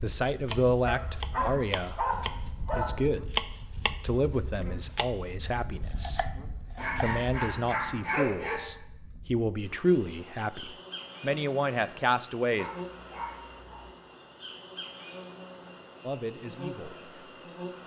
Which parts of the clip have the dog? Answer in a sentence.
You can hear the dog from 0.8 to 2.9 s, from 6.8 to 8.6 s and from 12.6 to 13.8 s.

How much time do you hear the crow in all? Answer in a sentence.
You can't hear the crow here.